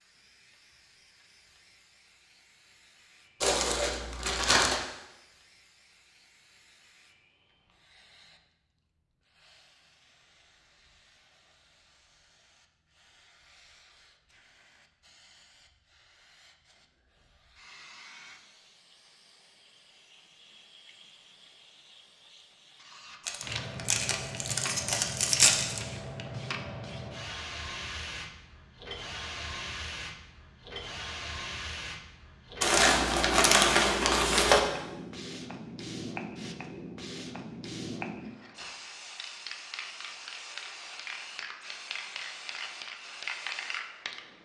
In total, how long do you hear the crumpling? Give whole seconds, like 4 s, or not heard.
6 s.